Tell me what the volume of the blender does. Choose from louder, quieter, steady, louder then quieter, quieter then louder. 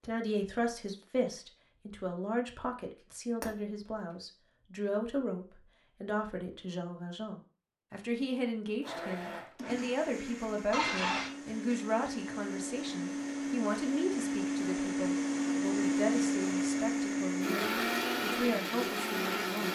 louder.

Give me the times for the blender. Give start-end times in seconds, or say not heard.
8.8-19.7.